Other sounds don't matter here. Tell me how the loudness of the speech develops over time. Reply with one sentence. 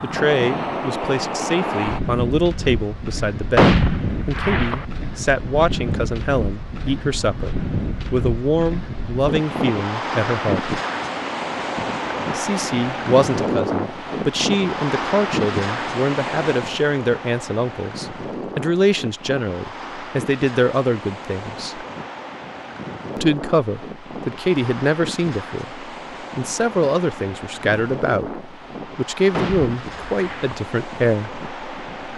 The volume of the speech stays about the same.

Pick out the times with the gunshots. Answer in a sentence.
The gunshots can be heard from 3.5 to 4.8 s and from 29.3 to 30.6 s.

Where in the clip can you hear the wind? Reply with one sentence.
The wind can be heard from 0.0 to 32.1 s.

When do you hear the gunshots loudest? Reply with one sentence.
The loudest moment of the gunshots is at 4 seconds.